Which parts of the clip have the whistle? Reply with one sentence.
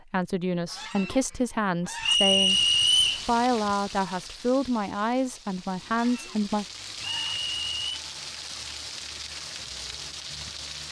You can hear the whistle from 2.0 to 3.2 s and from 7.0 to 8.0 s.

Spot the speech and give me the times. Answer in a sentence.
The speech can be heard from 0.1 to 6.7 s.